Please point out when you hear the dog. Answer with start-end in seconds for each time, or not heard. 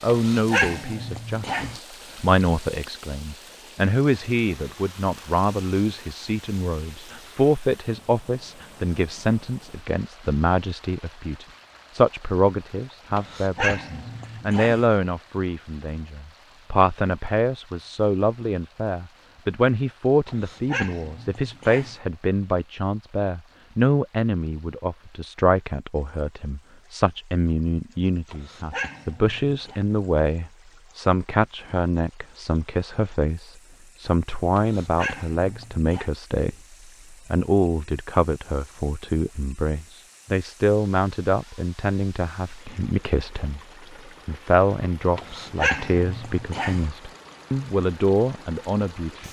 0.1-1.8, 13.2-14.8, 20.2-21.9, 28.3-29.8, 34.5-36.1, 45.1-46.9.